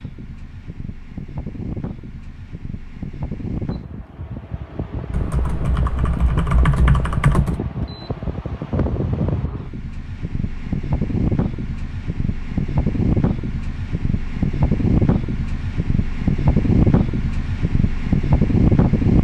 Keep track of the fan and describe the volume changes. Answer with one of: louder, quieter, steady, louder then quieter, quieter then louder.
louder.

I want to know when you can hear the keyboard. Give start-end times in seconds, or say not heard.
5.1-7.6.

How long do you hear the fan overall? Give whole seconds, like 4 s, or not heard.
19 s.